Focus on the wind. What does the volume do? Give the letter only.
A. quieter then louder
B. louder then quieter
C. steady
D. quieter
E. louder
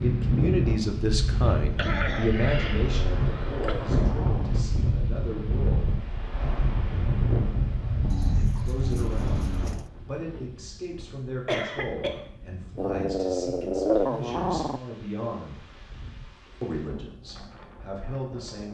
D.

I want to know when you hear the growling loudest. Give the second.
14 s.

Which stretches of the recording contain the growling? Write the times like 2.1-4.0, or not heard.
2.8-4.5, 8.1-9.9, 12.8-14.8.